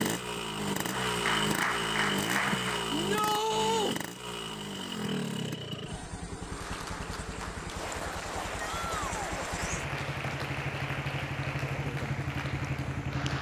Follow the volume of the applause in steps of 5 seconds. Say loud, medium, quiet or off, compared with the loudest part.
loud, medium, medium.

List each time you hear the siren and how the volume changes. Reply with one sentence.
You can't hear the siren here.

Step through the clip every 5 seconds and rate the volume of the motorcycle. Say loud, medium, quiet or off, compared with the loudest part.
loud, medium, loud.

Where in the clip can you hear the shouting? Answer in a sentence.
You can hear the shouting from 2.9 to 4.0 s and from 8.6 to 9.4 s.